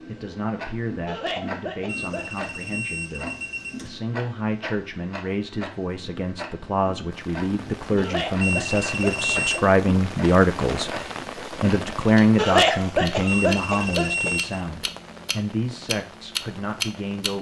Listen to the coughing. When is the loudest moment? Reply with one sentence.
The volume of the coughing peaks at 13 seconds.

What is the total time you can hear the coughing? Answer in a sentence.
The coughing can be heard for 5 seconds in total.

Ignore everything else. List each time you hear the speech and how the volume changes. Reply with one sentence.
The speech can be heard from 0.0 to 17.3 s, getting louder then quieter.